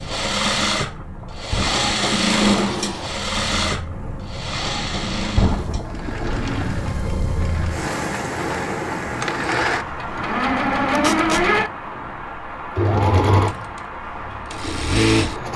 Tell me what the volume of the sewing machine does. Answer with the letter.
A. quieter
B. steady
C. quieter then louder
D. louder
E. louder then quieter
C.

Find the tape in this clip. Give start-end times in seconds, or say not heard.
10.9-11.4.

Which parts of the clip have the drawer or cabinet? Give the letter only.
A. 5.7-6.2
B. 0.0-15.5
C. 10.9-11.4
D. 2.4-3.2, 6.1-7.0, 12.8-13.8
D.